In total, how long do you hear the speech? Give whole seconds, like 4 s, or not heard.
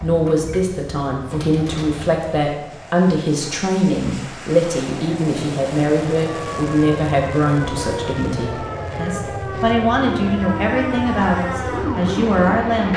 13 s.